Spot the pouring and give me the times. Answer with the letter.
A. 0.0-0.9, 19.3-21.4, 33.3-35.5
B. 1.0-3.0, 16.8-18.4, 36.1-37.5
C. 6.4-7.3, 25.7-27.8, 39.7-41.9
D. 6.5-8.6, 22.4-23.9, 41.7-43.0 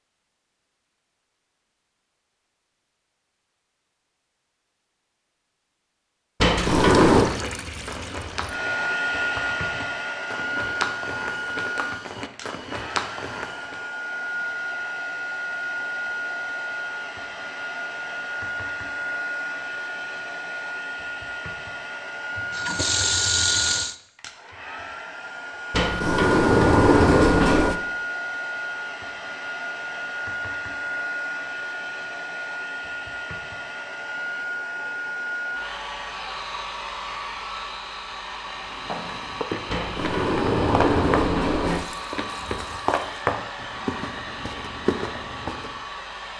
D.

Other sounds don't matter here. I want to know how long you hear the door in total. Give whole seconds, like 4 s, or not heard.
5 s.